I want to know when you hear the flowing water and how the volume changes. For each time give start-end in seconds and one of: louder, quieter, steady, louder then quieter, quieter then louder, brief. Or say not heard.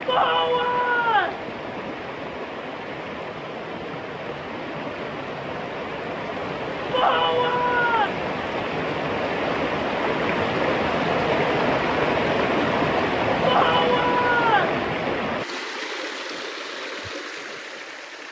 0.0-18.2 louder then quieter.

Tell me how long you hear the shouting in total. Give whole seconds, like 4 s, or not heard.
4 s.